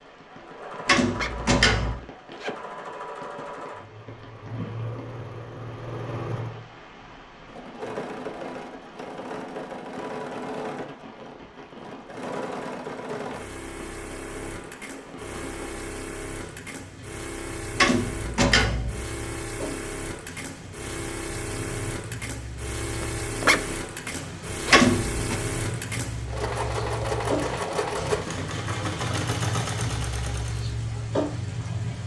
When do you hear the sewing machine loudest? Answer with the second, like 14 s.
28 s.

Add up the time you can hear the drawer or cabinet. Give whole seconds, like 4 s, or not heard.
3 s.